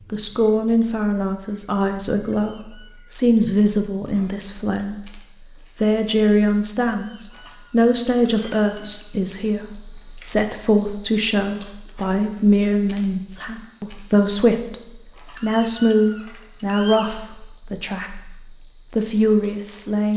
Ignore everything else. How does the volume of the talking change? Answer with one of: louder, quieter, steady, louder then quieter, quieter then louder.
steady.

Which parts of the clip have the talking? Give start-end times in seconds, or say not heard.
0.1-20.1.